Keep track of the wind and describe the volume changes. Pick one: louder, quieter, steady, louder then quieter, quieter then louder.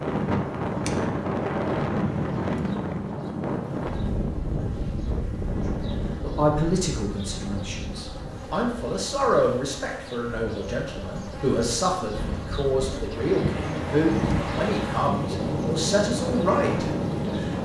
quieter then louder.